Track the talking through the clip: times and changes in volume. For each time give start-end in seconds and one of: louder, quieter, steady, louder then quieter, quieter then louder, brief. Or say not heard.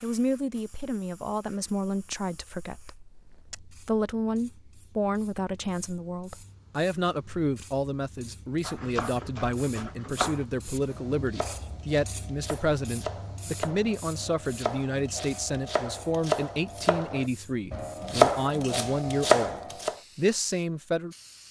0.0-21.4 steady.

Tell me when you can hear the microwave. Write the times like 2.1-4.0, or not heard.
not heard.